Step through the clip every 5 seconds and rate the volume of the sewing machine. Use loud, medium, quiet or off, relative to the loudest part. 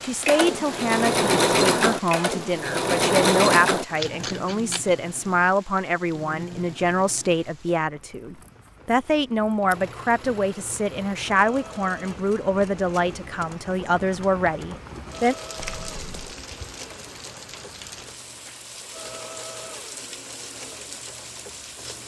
loud, quiet, quiet, quiet, quiet.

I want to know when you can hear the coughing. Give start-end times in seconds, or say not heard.
not heard.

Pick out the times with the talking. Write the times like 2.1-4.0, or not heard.
0.0-15.3.